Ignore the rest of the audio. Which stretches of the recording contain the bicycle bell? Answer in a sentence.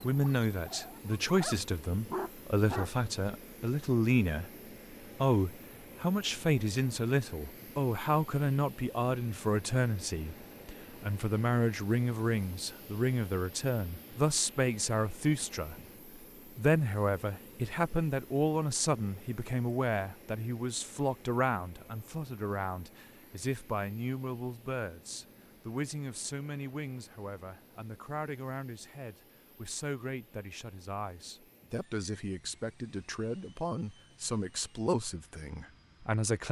The bicycle bell can't be heard in this clip.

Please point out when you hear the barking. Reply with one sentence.
The barking can be heard from 0.0 to 2.9 s.